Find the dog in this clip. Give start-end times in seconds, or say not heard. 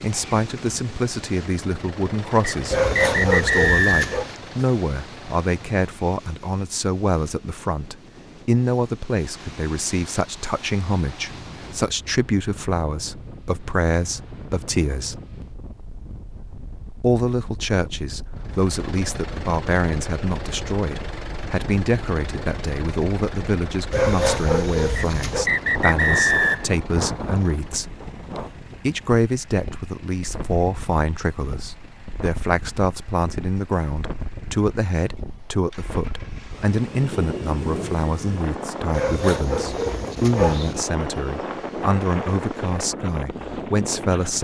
2.7-4.2, 23.9-25.4, 38.9-40.9.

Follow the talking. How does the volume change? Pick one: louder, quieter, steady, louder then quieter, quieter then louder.
steady.